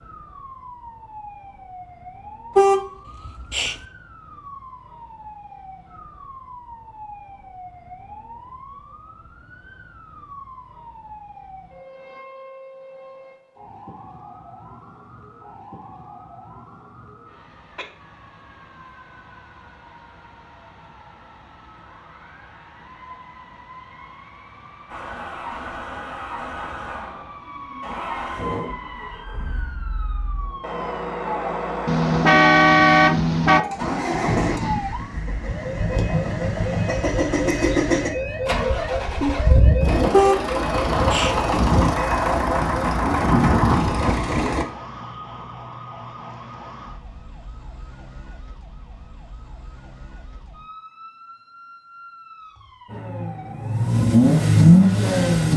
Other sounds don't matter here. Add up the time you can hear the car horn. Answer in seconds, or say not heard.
4 s.